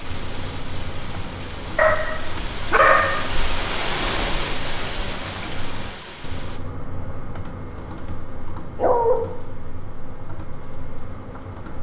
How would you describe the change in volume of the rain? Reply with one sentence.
The loudness of the rain goes up, then down.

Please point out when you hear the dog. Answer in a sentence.
The dog can be heard from 1.8 to 3.2 s and from 8.8 to 9.2 s.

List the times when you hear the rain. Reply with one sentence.
The rain can be heard from 0.0 to 6.6 s.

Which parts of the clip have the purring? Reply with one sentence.
The purring can't be heard in this clip.